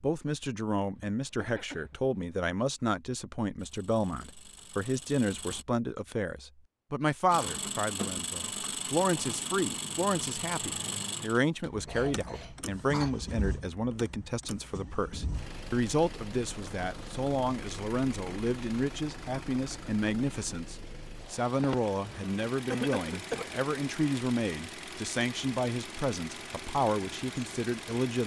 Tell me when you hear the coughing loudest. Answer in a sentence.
The volume of the coughing peaks at 23 seconds.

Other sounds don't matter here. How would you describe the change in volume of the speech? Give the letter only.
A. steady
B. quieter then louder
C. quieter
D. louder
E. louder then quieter
A.